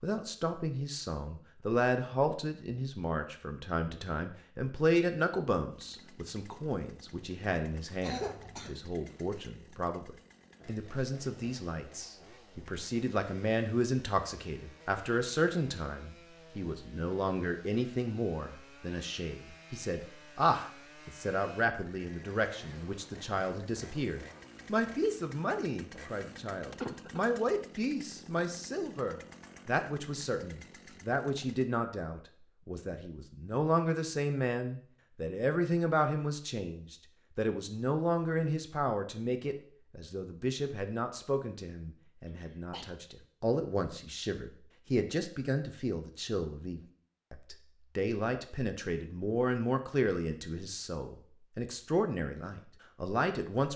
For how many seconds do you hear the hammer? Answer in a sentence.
You can't hear the hammer here.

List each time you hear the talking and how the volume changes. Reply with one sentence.
You can hear the talking from 0.0 to 53.7 s, at a steady volume.